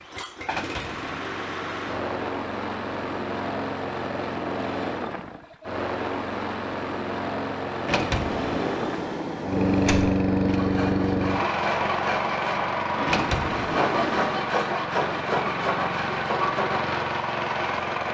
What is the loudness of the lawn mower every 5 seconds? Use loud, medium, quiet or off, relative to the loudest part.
medium, loud, loud, loud.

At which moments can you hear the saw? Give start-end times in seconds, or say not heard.
10.5-16.9.